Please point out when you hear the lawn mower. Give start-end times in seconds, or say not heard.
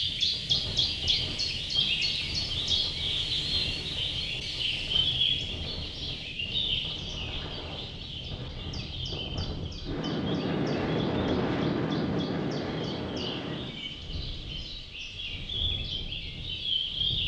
not heard.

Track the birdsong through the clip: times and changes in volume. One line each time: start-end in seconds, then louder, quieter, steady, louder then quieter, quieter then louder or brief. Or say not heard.
0.0-17.2 quieter then louder.